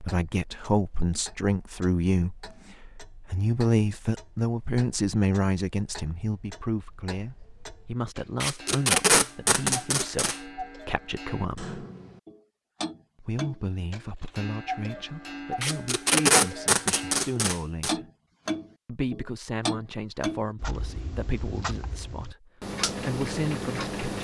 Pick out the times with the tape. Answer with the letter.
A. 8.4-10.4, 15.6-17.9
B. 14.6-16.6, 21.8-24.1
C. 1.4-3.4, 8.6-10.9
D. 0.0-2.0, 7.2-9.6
A.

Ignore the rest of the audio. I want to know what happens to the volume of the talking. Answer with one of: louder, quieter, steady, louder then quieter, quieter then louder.
quieter.